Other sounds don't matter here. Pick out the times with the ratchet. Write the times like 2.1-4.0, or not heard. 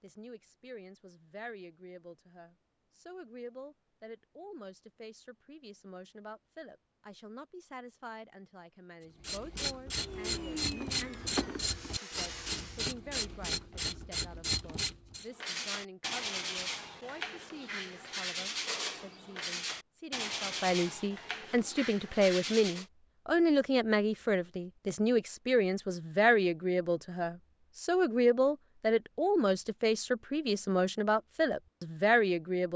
9.2-15.2.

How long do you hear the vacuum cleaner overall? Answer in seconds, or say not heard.
3 s.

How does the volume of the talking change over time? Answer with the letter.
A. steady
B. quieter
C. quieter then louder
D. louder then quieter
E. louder
E.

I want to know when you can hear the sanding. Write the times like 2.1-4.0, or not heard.
15.3-22.9.